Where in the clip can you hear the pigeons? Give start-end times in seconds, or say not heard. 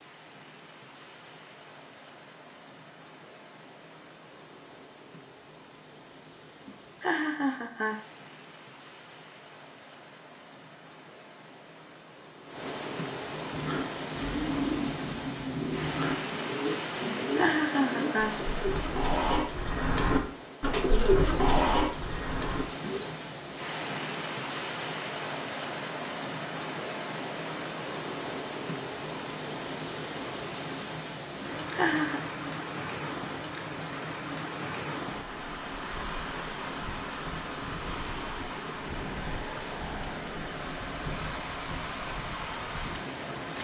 13.5-23.1.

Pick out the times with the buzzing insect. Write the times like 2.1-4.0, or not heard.
not heard.